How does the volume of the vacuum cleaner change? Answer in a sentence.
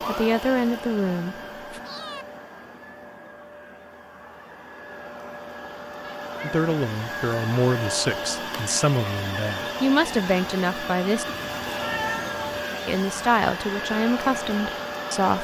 The volume of the vacuum cleaner goes up.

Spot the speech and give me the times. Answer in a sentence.
You can hear the speech from 0.1 to 1.8 s, from 6.4 to 11.2 s and from 12.8 to 15.3 s.